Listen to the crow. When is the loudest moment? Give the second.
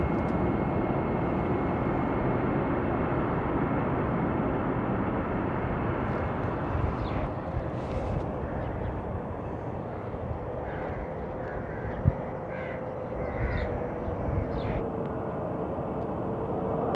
12 s.